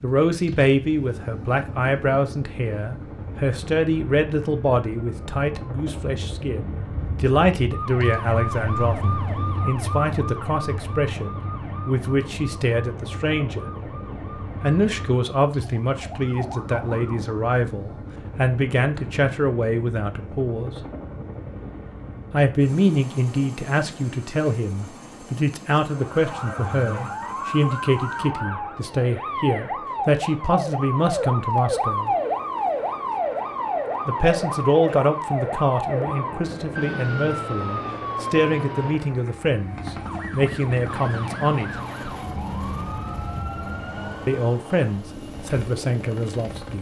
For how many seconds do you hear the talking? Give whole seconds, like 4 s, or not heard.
40 s.